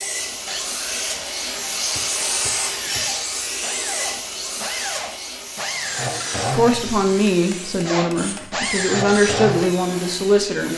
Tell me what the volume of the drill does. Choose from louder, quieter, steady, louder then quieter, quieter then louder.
louder.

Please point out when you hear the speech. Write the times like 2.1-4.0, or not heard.
6.5-10.7.